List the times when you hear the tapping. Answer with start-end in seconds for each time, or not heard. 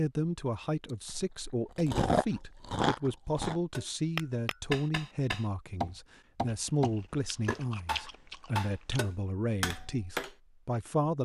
3.7-10.3.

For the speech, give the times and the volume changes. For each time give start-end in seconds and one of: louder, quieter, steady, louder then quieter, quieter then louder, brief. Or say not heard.
0.0-11.2 steady.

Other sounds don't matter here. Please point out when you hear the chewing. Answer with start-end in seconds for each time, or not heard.
0.8-3.6, 6.5-9.0.